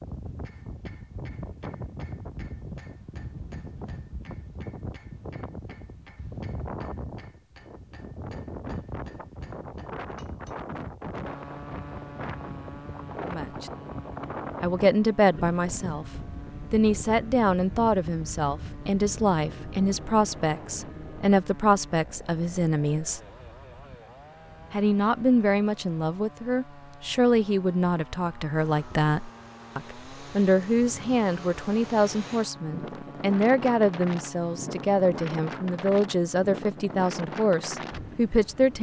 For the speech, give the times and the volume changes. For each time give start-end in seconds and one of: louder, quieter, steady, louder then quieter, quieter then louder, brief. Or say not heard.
13.2-13.7 brief
14.6-16.1 brief
16.7-23.2 steady
24.7-38.7 steady.